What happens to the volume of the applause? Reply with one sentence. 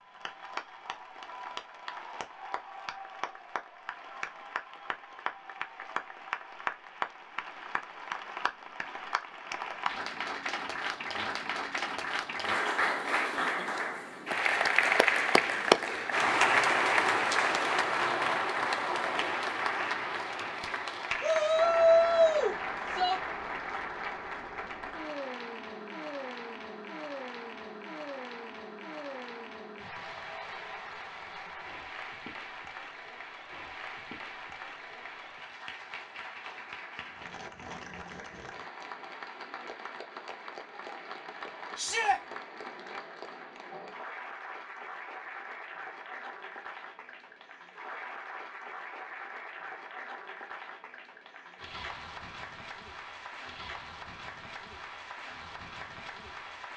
The volume of the applause goes up, then down.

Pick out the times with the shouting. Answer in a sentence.
The shouting can be heard from 21.2 to 23.2 s and from 41.8 to 42.2 s.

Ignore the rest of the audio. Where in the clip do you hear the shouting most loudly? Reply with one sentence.
The volume of the shouting peaks at 22 seconds.